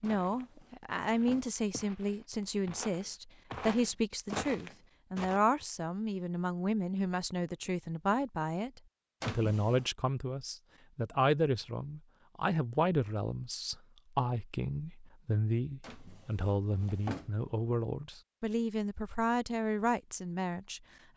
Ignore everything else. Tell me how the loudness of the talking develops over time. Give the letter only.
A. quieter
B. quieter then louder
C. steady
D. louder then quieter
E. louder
C.